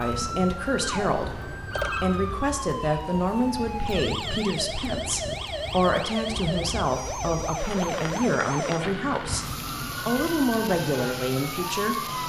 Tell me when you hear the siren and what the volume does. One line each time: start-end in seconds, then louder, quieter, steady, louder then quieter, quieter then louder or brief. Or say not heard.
0.0-12.2 steady.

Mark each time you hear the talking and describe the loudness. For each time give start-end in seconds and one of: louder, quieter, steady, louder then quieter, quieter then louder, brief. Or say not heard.
0.0-12.2 steady.